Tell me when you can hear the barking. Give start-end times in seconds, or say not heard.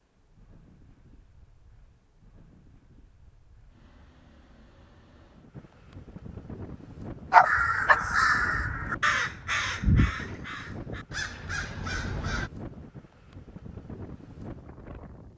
7.3-8.0.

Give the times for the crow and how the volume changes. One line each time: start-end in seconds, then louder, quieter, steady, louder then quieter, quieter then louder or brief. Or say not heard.
7.4-12.5 quieter.